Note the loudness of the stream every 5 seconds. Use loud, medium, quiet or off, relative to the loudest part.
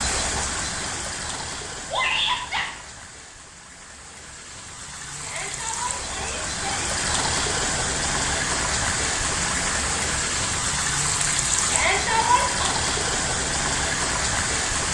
medium, loud, loud.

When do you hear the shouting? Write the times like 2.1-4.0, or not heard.
1.9-2.6, 5.2-6.8, 11.7-12.7.